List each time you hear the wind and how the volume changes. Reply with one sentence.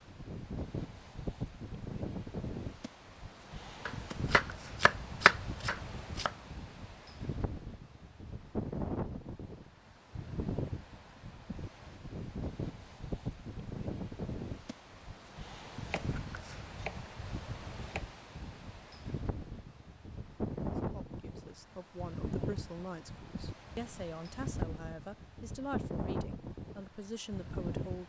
The wind can be heard from 0.0 to 28.0 s, at a steady volume.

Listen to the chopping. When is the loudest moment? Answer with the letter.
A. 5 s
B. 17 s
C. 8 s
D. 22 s
A.